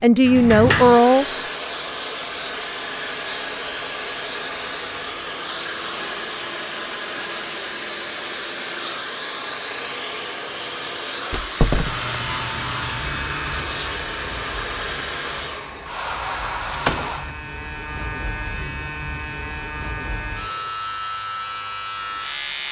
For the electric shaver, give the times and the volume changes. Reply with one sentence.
You can hear the electric shaver from 11.8 to 22.6 s, getting quieter then louder.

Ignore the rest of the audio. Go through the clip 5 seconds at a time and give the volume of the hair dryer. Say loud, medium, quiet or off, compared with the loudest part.
loud, loud, loud, loud, quiet.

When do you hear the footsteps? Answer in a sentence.
The footsteps can't be heard in this clip.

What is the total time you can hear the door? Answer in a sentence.
You can hear the door for 2 seconds altogether.